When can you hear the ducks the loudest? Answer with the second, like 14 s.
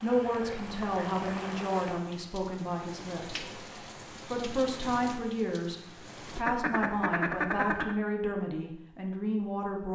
7 s.